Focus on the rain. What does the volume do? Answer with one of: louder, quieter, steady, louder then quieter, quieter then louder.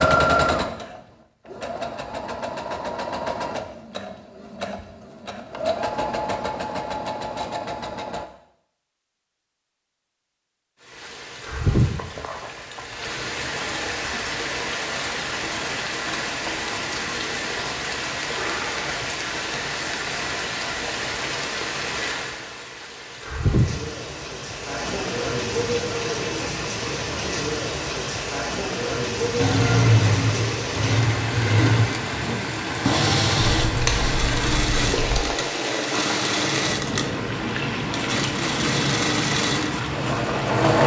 steady.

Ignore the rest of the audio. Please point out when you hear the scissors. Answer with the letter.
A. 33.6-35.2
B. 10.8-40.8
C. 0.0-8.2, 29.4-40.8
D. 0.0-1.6
A.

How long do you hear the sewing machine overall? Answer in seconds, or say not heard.
20 s.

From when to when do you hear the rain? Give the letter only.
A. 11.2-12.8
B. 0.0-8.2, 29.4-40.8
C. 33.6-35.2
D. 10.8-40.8
D.